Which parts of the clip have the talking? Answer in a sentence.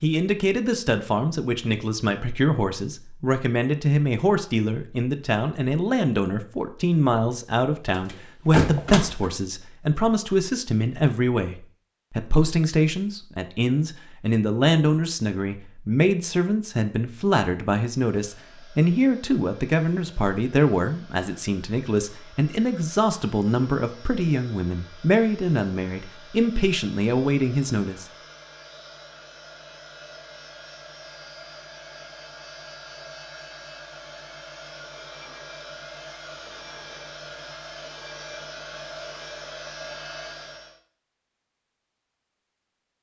The talking can be heard from 0.0 to 28.1 s.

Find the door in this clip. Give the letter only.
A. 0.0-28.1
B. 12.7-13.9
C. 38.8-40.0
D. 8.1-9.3
D.